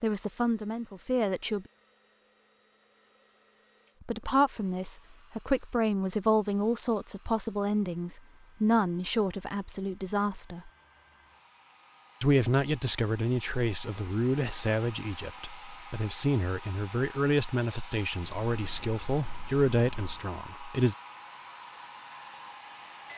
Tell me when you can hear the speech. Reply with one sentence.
You can hear the speech from 0.0 to 1.6 s, from 4.0 to 10.7 s and from 12.2 to 20.9 s.